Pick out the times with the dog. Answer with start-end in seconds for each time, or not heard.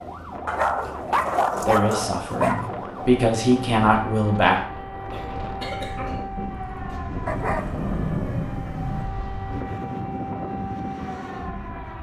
0.5-2.7, 7.2-9.1.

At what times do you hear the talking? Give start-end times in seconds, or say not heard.
1.6-4.5.